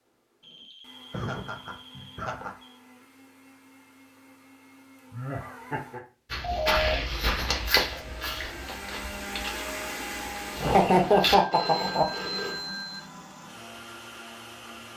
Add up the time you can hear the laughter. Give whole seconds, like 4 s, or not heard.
4 s.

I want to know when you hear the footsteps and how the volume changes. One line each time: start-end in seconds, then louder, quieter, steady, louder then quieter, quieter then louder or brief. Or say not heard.
6.3-11.3 quieter.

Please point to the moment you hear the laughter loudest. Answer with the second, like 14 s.
11 s.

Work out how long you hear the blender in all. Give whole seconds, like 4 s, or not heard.
15 s.